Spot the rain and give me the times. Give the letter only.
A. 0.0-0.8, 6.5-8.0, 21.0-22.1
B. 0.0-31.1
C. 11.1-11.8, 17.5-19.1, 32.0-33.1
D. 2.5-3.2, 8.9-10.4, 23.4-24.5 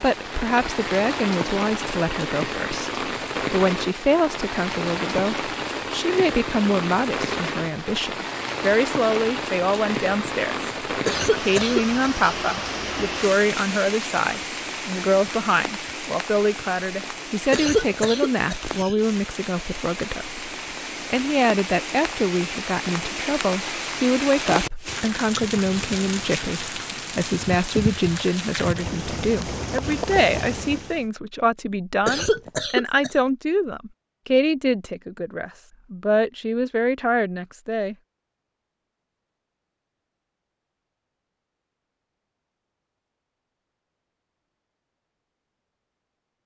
B.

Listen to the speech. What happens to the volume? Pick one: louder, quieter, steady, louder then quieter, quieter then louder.
steady.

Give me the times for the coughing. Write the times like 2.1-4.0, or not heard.
11.1-11.8, 17.5-19.1, 32.0-33.1.